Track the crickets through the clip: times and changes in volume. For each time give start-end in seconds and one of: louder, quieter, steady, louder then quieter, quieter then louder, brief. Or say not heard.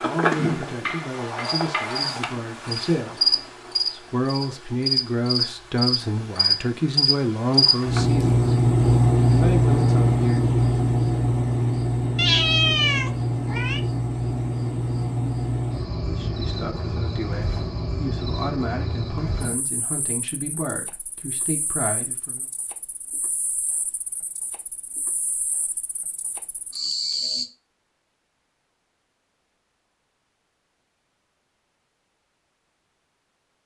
0.0-27.4 louder then quieter.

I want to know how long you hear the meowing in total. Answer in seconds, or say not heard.
2 s.